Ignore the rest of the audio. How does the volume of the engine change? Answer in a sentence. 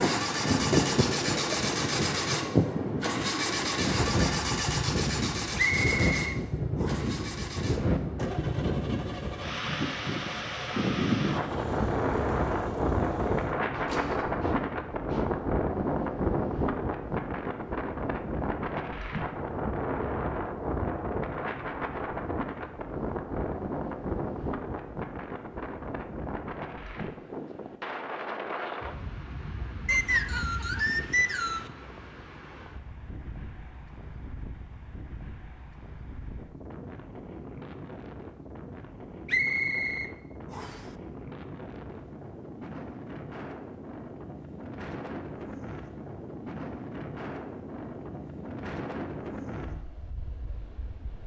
The loudness of the engine goes down.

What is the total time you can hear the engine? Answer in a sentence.
The engine can be heard for 14 seconds in total.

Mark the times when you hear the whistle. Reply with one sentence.
You can hear the whistle from 5.5 to 7.1 s, from 29.9 to 31.7 s and from 39.2 to 40.9 s.